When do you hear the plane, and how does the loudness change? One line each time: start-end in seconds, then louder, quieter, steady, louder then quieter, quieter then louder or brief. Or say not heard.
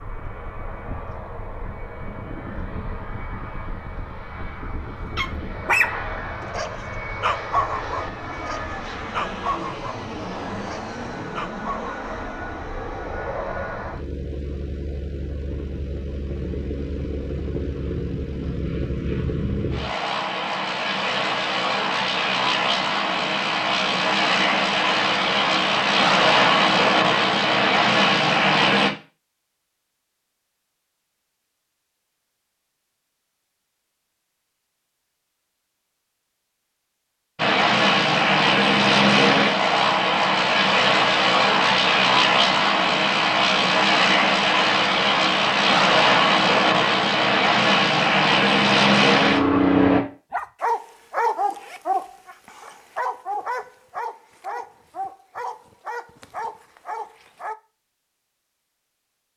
0.0-28.9 louder
37.4-50.0 steady.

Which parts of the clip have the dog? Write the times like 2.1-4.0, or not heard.
5.2-11.9, 50.3-57.5.